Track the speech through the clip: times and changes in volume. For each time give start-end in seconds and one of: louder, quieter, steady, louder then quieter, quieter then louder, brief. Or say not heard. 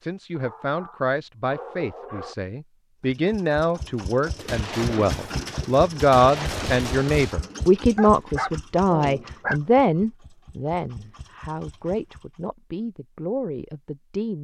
0.0-14.3 louder then quieter.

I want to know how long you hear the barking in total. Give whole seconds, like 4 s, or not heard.
4 s.